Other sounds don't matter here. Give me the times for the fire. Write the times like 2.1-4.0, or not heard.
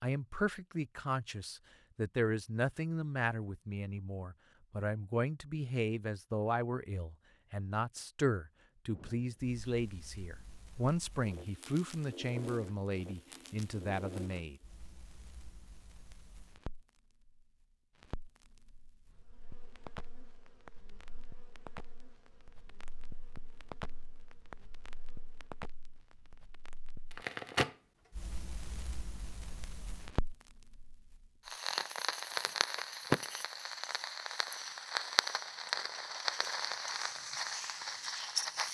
8.9-38.6.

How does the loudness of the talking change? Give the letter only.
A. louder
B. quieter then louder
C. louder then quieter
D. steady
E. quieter
D.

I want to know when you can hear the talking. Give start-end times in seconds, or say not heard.
0.0-14.6.